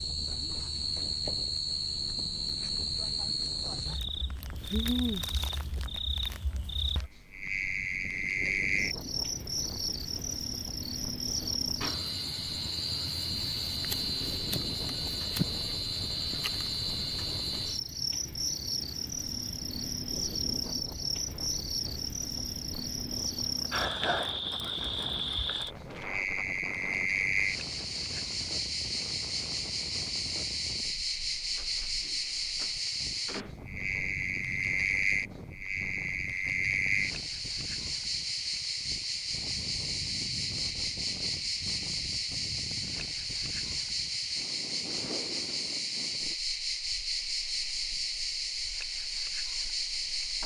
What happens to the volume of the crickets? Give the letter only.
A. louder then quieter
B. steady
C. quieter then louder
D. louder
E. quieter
B.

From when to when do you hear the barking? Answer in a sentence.
The barking can't be heard in this clip.